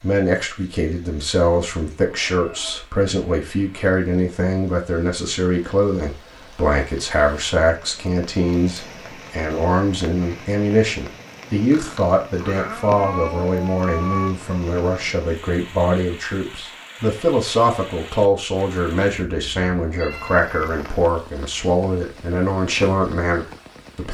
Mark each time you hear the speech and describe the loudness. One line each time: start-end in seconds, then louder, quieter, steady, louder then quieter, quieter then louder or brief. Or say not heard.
0.0-24.0 steady.